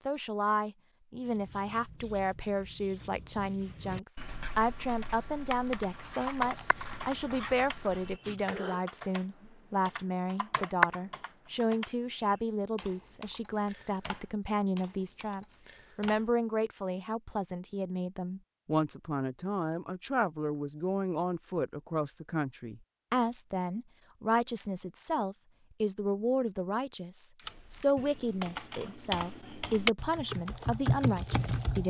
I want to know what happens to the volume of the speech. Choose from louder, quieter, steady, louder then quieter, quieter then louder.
steady.